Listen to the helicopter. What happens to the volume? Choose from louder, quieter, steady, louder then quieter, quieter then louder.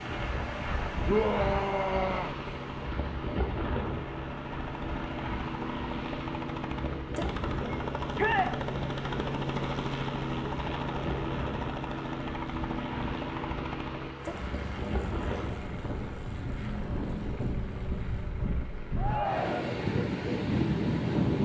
louder then quieter.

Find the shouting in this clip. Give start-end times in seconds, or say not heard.
1.1-2.4, 8.2-8.6, 18.9-19.8.